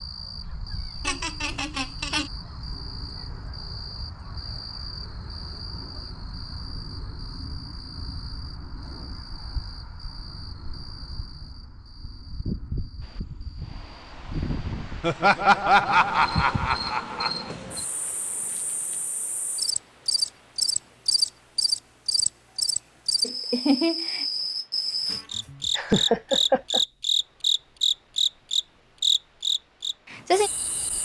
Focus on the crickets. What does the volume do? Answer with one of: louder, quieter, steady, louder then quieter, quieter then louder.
louder.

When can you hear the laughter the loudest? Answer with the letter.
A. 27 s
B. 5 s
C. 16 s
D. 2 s
C.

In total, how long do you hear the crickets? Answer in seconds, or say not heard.
31 s.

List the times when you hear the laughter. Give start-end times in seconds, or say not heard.
1.1-2.3, 15.0-17.5, 25.8-26.8.